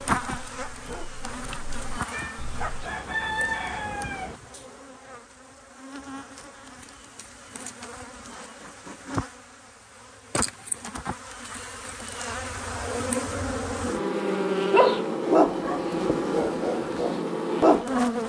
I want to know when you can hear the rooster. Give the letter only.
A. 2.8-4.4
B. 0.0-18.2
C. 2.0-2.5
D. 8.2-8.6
A.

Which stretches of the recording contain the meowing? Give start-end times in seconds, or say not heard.
2.0-2.5.